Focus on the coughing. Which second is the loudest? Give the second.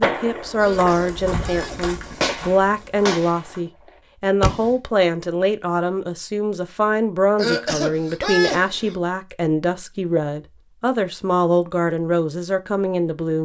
8 s.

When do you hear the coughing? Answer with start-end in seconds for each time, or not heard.
0.6-1.9, 7.3-8.9.